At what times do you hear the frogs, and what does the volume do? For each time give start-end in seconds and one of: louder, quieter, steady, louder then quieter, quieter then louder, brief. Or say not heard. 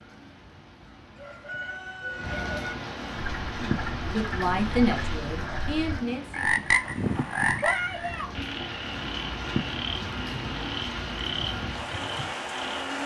3.1-13.0 louder then quieter.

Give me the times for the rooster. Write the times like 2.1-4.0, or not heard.
1.1-2.8.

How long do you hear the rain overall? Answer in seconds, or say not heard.
13 s.